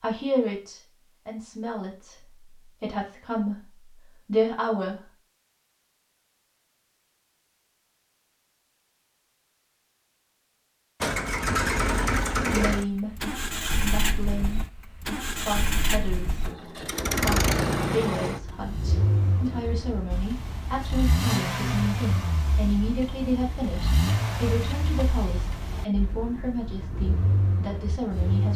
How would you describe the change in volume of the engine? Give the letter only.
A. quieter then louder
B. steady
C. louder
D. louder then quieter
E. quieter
E.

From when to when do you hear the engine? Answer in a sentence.
You can hear the engine from 11.0 to 28.5 s.